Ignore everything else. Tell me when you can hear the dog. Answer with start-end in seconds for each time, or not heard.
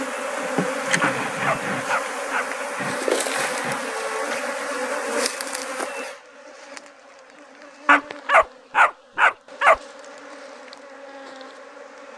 1.0-2.5, 7.8-9.8.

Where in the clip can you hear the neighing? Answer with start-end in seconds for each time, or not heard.
not heard.